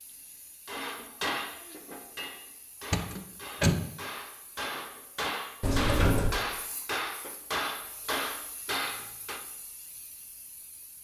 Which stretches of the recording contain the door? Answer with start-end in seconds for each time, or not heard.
2.9-3.9, 5.6-6.4.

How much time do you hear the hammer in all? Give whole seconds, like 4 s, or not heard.
9 s.